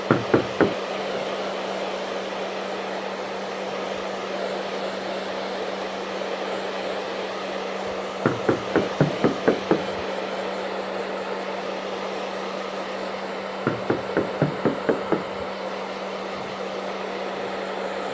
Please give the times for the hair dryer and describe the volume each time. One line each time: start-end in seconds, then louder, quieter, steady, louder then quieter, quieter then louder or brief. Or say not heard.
0.0-18.0 steady.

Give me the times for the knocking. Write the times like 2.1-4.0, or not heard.
0.1-0.8, 8.2-10.0, 13.7-15.4.